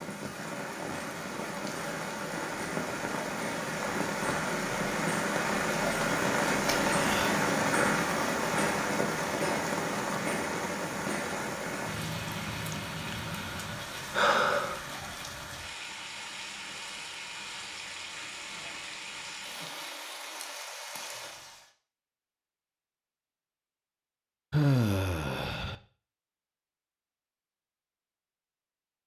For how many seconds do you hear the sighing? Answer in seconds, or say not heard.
4 s.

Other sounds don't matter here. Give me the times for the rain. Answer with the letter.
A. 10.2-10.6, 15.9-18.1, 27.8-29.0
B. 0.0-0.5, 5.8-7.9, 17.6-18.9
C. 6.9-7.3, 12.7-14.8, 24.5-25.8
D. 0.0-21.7
D.